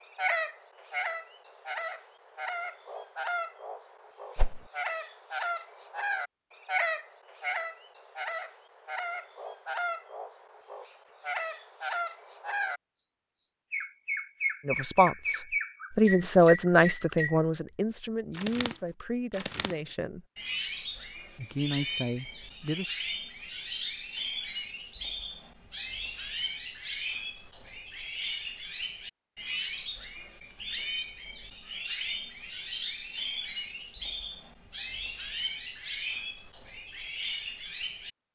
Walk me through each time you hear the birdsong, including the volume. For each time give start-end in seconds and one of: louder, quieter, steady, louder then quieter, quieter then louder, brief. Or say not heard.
0.0-38.1 steady.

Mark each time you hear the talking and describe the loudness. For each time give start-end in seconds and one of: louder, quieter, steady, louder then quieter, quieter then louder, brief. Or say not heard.
14.7-20.2 louder then quieter
21.3-22.9 brief.